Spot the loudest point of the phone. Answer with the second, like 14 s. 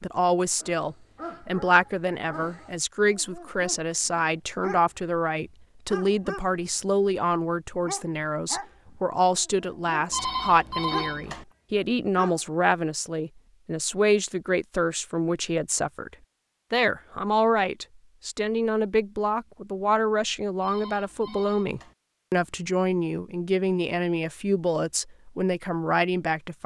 11 s.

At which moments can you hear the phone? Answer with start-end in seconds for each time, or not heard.
10.1-11.4, 20.6-21.9.